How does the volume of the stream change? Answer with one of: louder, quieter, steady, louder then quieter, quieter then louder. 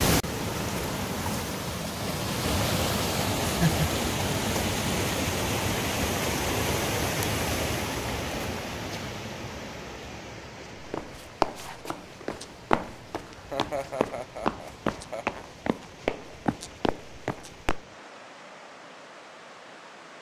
quieter.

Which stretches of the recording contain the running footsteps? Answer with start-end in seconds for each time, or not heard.
10.8-17.9.